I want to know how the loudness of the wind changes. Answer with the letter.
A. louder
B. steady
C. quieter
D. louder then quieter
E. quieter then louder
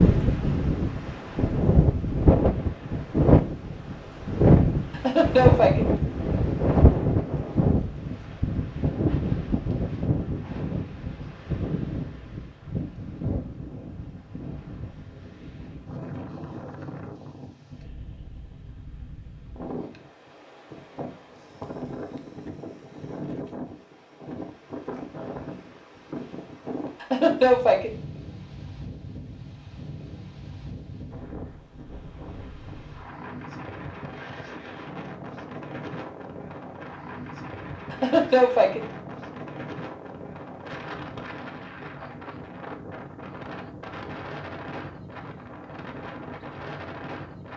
C.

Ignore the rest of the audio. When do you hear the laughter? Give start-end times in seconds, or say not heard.
5.0-5.8, 27.0-27.9, 37.9-38.9.